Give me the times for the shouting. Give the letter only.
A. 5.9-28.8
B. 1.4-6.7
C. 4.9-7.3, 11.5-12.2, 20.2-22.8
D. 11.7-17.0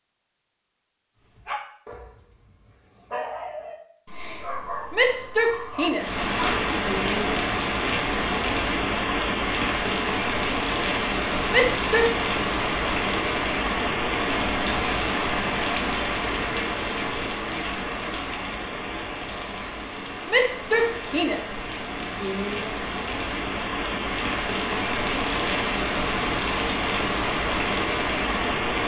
C.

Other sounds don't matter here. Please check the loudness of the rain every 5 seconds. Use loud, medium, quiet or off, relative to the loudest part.
off, loud, loud, loud, medium, loud.